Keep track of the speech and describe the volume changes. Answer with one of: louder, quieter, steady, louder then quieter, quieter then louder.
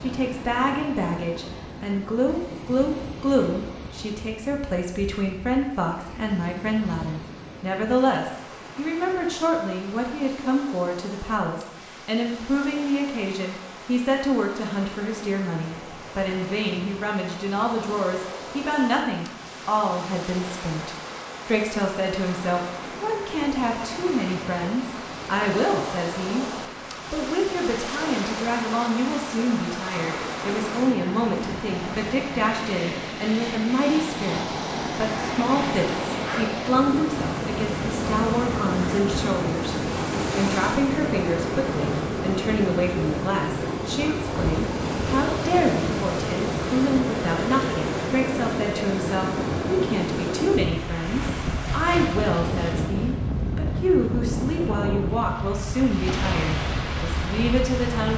steady.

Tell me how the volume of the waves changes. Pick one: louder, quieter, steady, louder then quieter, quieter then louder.
louder.